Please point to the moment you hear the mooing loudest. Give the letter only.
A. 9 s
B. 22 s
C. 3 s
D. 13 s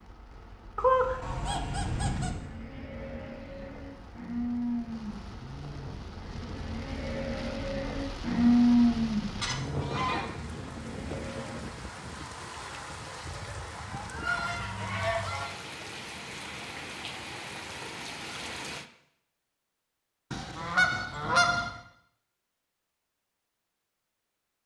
A.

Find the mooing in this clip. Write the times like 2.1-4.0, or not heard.
1.3-11.7.